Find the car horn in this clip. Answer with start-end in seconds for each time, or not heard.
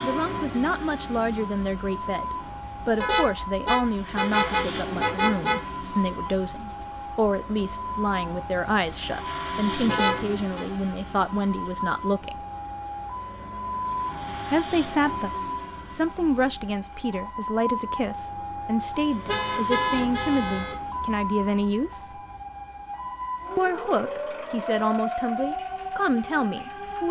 3.0-5.6, 9.8-10.7, 19.2-20.8.